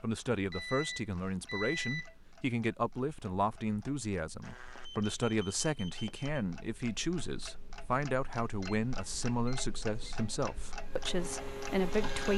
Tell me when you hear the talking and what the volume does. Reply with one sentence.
You can hear the talking from 0.0 to 12.3 s, at a steady volume.